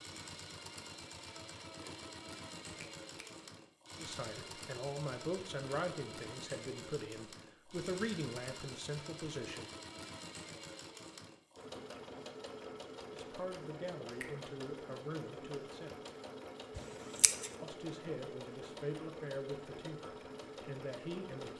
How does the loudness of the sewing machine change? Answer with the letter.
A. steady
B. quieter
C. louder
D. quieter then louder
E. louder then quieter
A.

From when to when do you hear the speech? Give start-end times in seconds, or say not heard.
4.0-9.7, 13.1-16.0, 17.6-21.5.